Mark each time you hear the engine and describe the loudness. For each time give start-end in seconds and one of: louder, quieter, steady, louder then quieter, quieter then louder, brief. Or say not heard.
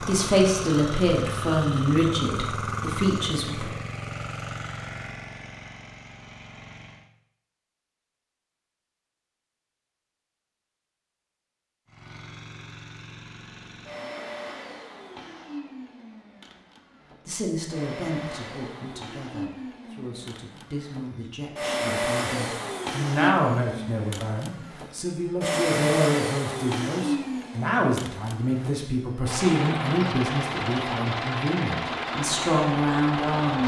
0.0-7.1 quieter
11.8-33.6 louder.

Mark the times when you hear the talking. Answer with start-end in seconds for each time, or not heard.
0.1-3.7, 17.2-33.6.